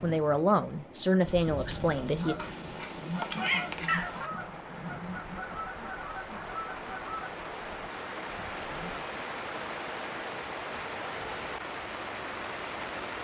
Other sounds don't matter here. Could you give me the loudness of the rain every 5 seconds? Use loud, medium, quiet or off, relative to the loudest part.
medium, loud, loud.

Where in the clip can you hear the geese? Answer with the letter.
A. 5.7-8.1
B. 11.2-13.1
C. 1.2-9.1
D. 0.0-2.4
C.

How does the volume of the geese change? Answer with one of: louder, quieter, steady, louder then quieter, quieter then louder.
quieter.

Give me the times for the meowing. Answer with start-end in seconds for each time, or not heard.
2.4-4.3.